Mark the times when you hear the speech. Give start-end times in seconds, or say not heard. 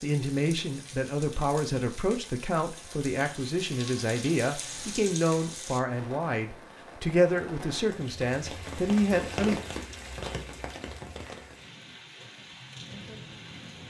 0.0-9.6.